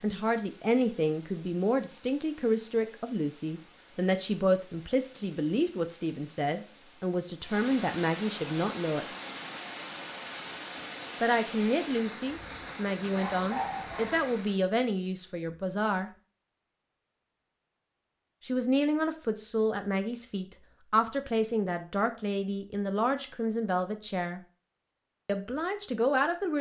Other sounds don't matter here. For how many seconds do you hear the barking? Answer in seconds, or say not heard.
2 s.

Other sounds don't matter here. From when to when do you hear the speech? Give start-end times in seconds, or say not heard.
0.0-9.1, 11.2-16.1, 18.4-24.4, 25.2-26.5.